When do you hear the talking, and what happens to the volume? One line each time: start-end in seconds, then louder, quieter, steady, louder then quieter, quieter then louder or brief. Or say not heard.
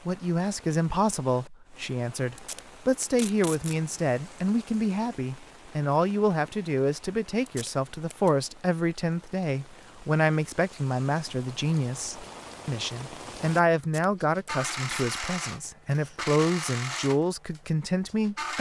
0.1-18.5 steady.